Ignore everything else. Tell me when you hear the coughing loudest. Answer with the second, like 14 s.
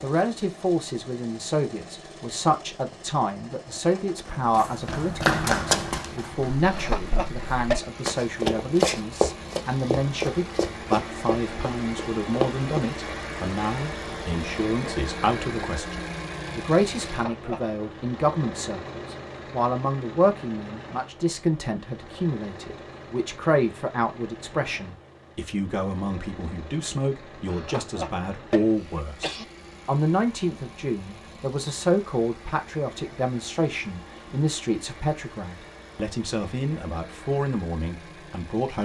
8 s.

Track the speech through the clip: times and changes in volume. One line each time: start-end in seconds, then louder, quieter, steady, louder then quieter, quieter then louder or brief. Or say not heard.
0.0-38.8 steady.